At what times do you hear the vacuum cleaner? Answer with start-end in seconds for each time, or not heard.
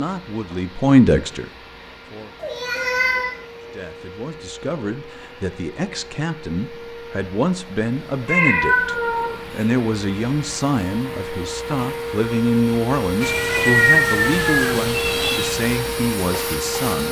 0.0-17.0.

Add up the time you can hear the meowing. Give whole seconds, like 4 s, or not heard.
5 s.